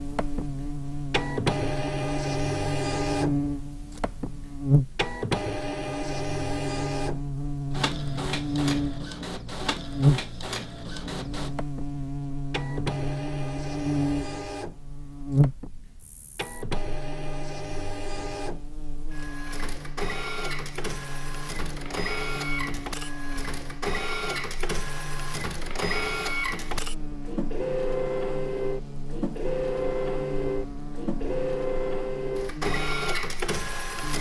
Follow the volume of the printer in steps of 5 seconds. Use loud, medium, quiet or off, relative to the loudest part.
loud, loud, medium, medium, loud, loud, loud.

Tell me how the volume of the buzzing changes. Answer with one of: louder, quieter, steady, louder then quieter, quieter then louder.
quieter.